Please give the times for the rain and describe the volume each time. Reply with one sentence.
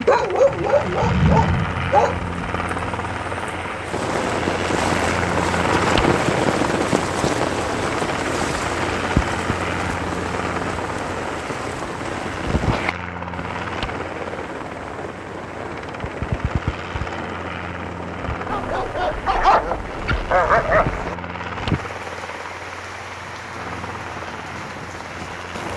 The rain can be heard from 0.0 to 25.7 s, getting quieter.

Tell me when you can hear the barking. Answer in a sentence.
The barking can be heard from 0.1 to 2.1 s and from 18.4 to 21.1 s.